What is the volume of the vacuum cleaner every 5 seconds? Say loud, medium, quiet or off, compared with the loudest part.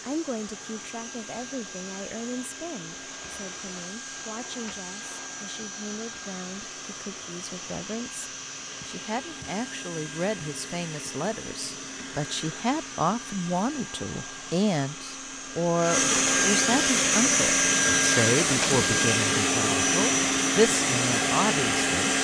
quiet, quiet, quiet, loud, loud.